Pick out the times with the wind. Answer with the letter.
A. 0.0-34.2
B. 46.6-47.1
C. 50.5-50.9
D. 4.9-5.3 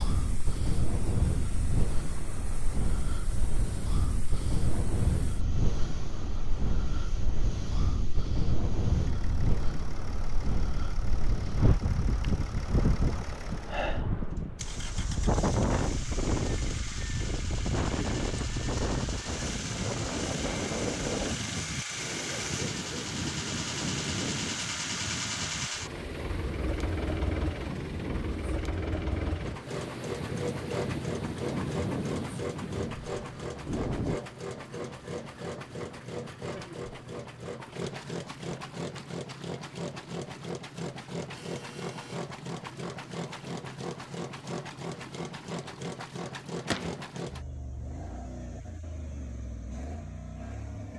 A.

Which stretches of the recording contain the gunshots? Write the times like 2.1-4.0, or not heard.
46.6-47.1.